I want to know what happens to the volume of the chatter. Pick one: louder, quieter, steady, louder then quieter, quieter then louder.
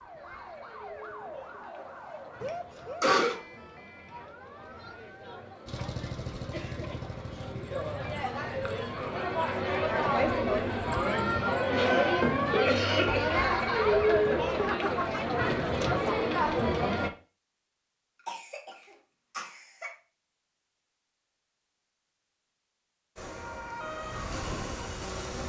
louder.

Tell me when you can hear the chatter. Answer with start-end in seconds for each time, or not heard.
0.0-17.1.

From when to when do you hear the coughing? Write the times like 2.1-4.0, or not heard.
2.4-3.4, 11.7-13.3, 18.2-19.9.